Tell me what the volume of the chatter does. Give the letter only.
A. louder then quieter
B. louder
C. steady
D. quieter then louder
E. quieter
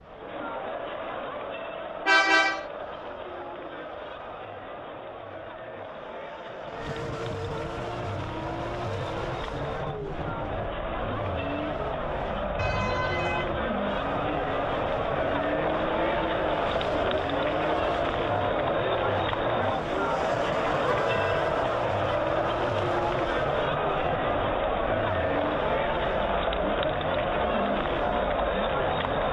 B.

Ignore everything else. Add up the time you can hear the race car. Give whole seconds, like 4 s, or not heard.
29 s.